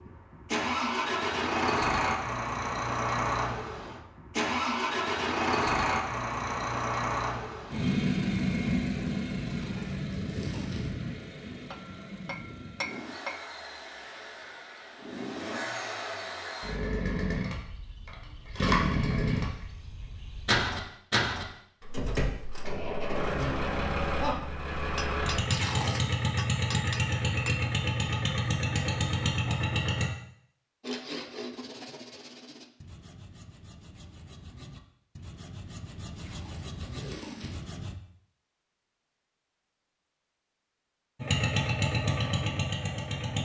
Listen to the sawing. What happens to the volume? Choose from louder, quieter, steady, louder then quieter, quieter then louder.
quieter then louder.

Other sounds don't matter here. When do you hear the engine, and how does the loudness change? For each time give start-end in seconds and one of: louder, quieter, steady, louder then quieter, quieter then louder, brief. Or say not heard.
0.0-30.1 quieter then louder
41.2-43.4 brief.